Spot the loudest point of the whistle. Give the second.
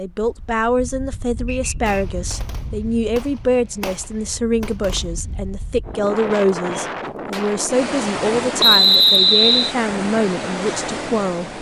9 s.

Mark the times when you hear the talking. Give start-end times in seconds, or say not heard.
0.0-11.5.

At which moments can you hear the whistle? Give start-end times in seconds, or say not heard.
1.4-1.9, 8.6-9.8.